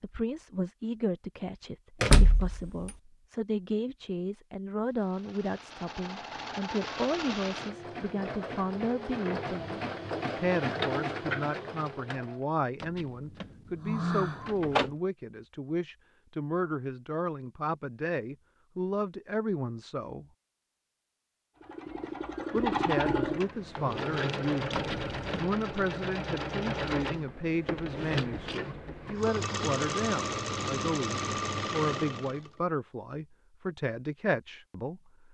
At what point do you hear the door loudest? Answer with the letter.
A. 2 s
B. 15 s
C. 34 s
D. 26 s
A.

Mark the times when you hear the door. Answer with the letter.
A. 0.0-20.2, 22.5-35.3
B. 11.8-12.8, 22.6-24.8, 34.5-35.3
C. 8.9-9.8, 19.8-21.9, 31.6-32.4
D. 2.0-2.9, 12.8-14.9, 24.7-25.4
D.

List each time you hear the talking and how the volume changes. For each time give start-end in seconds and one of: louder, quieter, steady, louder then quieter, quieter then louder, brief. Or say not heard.
0.0-20.2 steady
22.5-35.3 steady.